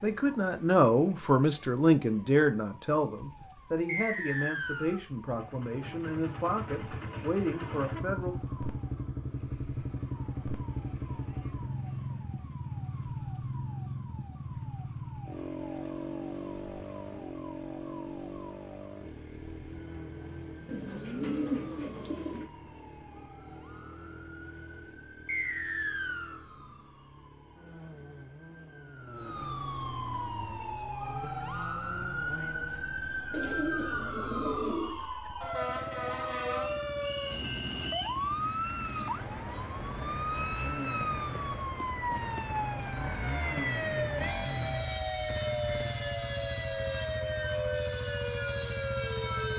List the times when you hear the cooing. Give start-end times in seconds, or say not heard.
20.6-22.5, 33.3-35.0.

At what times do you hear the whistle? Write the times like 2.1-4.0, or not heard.
3.9-5.0, 25.2-26.4, 37.0-38.2.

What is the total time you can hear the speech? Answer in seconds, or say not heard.
8 s.